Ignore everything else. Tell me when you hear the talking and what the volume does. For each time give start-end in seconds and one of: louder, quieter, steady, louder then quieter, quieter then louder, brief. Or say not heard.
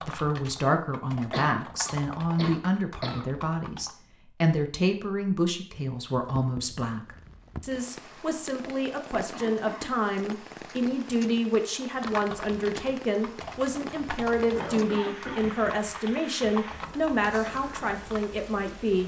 0.1-19.0 steady.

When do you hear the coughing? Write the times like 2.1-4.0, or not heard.
1.3-3.3, 8.6-10.1, 14.6-15.8.